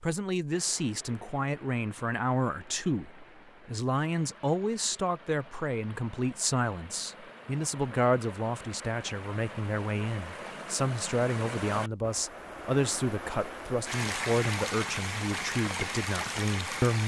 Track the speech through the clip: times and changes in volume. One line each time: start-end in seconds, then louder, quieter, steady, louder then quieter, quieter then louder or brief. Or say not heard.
0.0-17.0 steady.